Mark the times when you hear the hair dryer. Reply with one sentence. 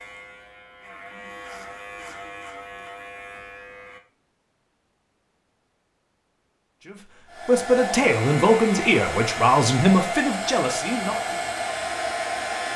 You can hear the hair dryer from 7.2 to 12.7 s.